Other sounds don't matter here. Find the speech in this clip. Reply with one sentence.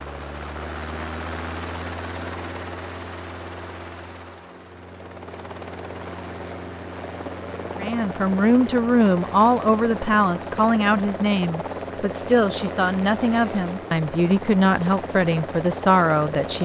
The speech can be heard from 7.8 to 16.6 s.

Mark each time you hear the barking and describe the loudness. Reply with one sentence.
You can't hear the barking here.